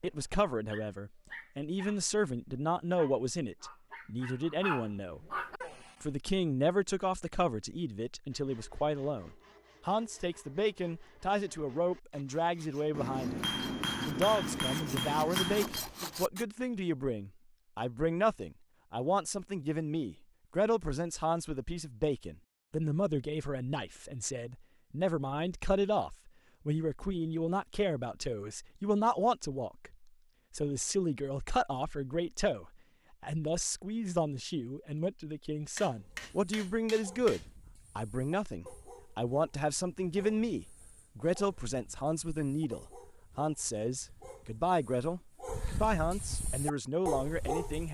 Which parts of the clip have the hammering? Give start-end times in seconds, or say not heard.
12.9-15.8, 35.8-37.5.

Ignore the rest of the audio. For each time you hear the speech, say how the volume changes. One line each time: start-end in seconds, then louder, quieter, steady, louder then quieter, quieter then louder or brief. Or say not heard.
0.0-5.2 steady
6.0-47.8 steady.